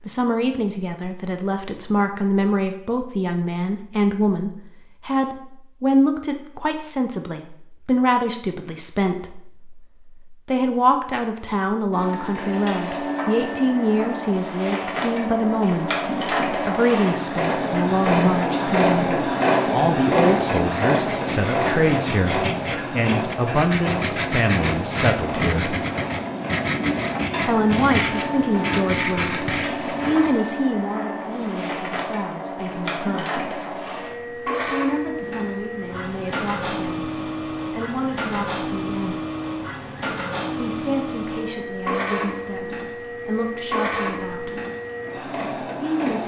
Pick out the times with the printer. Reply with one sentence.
You can hear the printer from 11.9 to 46.2 s.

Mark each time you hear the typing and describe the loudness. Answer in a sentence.
The typing can't be heard in this clip.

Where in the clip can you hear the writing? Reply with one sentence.
You can hear the writing from 20.2 to 30.4 s.